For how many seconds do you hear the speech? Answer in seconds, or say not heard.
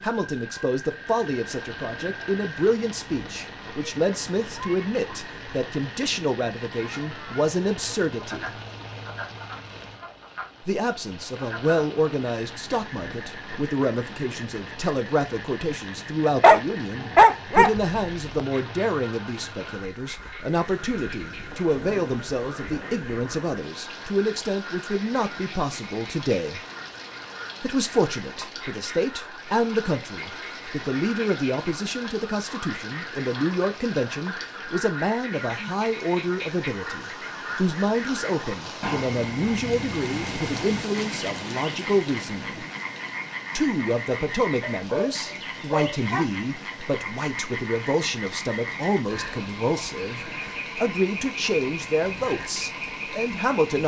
50 s.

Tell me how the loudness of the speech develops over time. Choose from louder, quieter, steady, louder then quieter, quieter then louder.
steady.